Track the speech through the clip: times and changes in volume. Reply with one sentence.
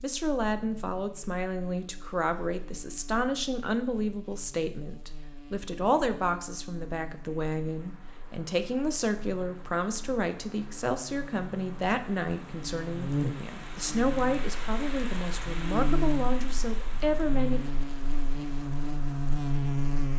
The speech can be heard from 0.0 to 17.6 s, at a steady volume.